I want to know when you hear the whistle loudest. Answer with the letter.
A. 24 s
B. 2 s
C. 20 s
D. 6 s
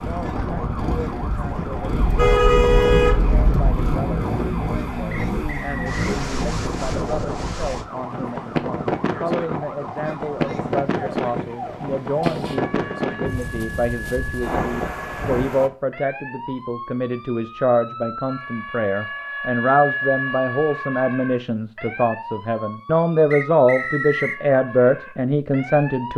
A.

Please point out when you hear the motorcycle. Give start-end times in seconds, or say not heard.
0.0-7.0.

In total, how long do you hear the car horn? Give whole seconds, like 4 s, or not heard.
2 s.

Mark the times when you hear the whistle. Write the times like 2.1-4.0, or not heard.
5.1-6.2, 23.3-24.4.